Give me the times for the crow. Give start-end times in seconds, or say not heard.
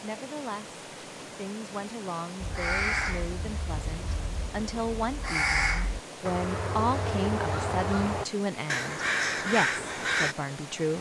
2.4-10.3.